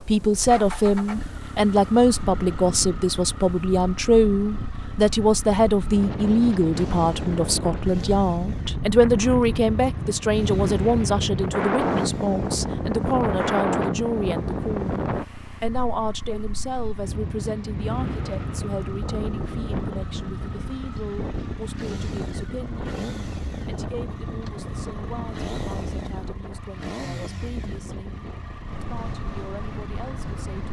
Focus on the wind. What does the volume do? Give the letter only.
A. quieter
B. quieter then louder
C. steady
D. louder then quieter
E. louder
D.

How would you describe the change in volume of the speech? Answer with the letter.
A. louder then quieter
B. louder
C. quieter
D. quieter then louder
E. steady
C.